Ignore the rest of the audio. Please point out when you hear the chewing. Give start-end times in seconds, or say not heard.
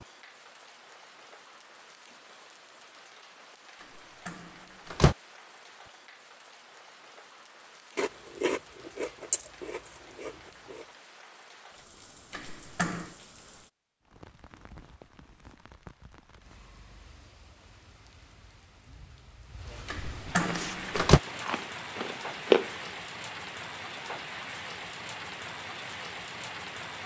8.0-10.8, 20.4-22.9.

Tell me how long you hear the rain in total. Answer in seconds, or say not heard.
27 s.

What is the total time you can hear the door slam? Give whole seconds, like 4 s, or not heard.
3 s.